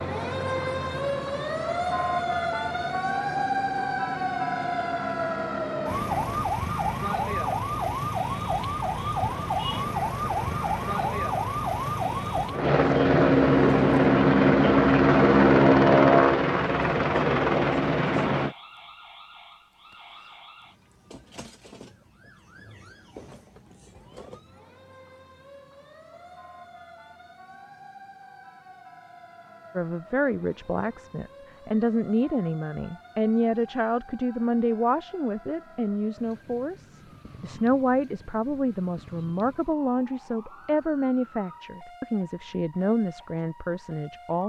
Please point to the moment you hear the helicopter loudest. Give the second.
16 s.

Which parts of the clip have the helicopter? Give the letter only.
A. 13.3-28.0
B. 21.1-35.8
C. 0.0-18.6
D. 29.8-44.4
C.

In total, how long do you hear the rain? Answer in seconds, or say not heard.
not heard.